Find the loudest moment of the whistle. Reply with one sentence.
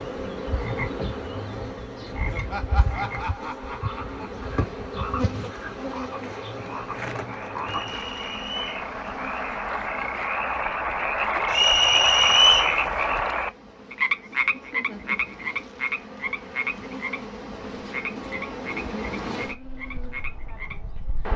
The volume of the whistle peaks at 12 seconds.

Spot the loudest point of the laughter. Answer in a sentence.
The loudest moment of the laughter is at 3 seconds.